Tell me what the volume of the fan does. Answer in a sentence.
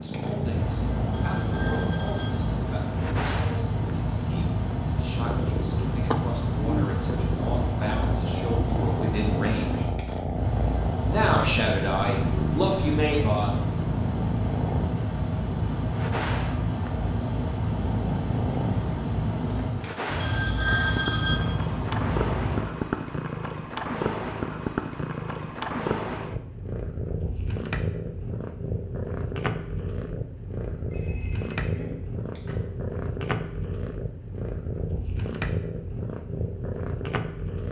The volume of the fan stays about the same.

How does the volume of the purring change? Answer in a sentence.
The loudness of the purring stays about the same.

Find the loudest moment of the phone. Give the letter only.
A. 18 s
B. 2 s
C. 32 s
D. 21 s
D.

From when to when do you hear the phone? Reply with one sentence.
You can hear the phone from 1.1 to 2.5 s, from 20.2 to 21.5 s and from 30.8 to 32.5 s.